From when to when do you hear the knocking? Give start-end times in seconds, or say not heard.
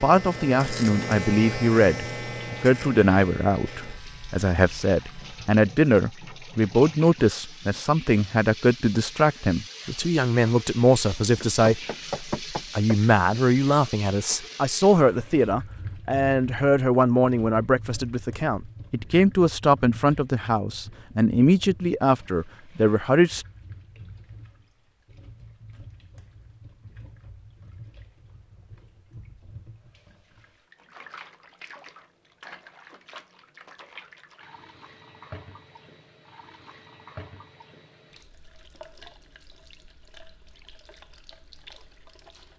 11.4-12.9.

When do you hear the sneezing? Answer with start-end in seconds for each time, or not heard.
not heard.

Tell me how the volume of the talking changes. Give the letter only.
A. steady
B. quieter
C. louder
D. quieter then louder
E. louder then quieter
A.